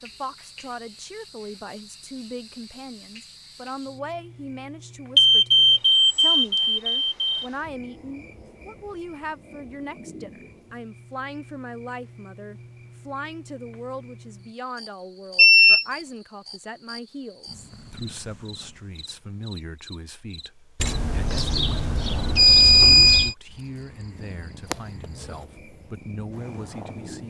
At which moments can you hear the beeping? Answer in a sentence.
The beeping can be heard from 5.2 to 7.5 s, from 15.3 to 15.8 s and from 20.8 to 23.4 s.